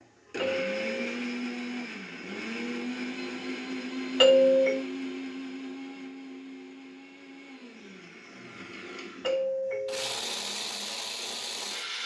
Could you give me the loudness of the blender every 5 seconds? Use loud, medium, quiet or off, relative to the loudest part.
loud, medium, loud.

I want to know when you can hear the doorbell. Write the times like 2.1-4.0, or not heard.
0.3-1.1, 4.2-4.8, 9.2-10.2.